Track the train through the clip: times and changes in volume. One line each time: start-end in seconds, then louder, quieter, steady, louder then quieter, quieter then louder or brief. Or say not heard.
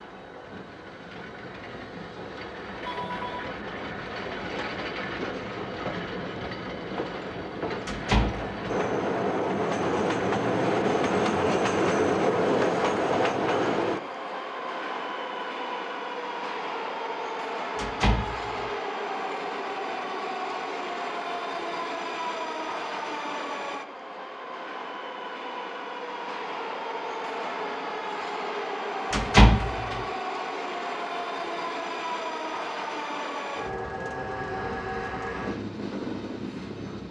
0.0-37.0 louder then quieter.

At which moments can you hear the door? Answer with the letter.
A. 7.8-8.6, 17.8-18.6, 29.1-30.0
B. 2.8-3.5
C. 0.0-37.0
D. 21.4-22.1
A.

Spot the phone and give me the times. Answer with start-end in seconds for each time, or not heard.
2.8-3.5.